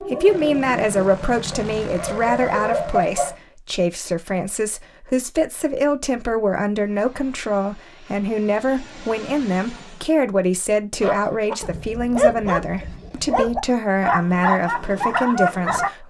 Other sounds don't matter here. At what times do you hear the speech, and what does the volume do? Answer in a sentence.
The speech can be heard from 0.0 to 16.0 s, at a steady volume.